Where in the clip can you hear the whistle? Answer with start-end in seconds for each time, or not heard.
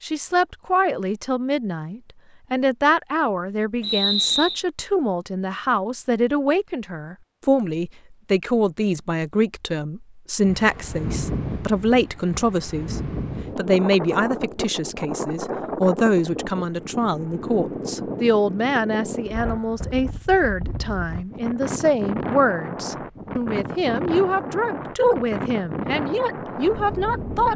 3.8-4.7.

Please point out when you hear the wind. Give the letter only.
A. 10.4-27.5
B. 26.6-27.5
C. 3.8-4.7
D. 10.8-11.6
A.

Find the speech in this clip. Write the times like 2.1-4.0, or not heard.
0.0-27.5.